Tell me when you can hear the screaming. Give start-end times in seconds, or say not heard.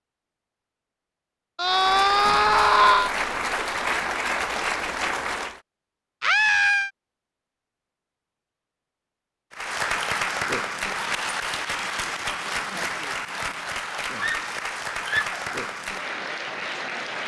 1.6-3.1, 6.2-6.9, 14.2-15.3.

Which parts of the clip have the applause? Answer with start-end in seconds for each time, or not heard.
1.6-5.6, 9.5-17.2.